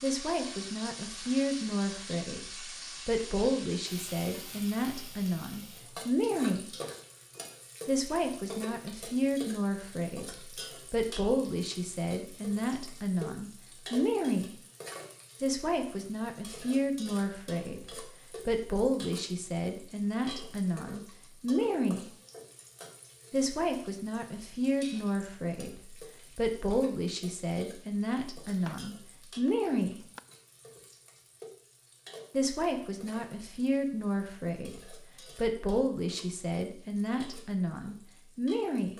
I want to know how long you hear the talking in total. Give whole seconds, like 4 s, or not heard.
33 s.